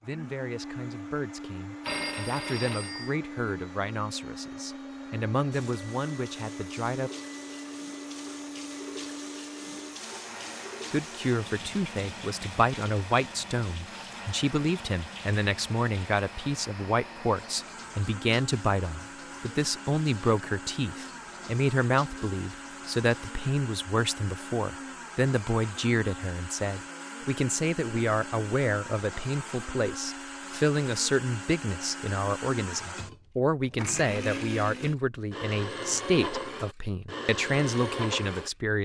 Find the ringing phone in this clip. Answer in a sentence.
You can hear the ringing phone from 1.8 to 3.2 s.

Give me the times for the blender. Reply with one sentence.
The blender can be heard from 0.0 to 38.5 s.